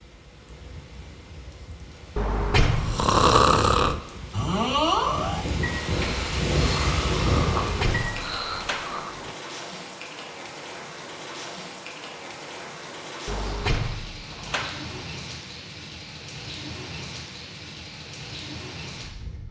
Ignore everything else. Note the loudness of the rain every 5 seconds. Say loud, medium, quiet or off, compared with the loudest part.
quiet, loud, medium, medium.